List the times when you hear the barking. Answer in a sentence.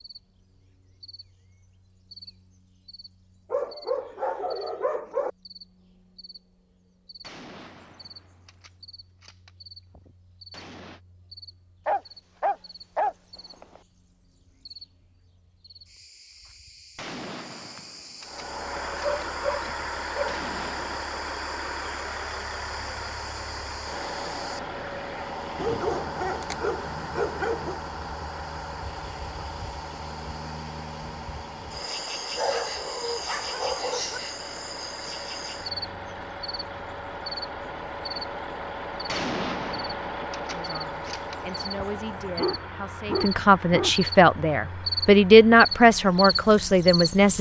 The barking can be heard from 3.5 to 5.3 s, from 11.8 to 13.8 s, from 19.0 to 20.4 s, from 25.6 to 27.8 s, from 32.4 to 34.2 s and from 42.0 to 44.0 s.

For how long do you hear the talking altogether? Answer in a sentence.
The talking can be heard for 7 seconds in total.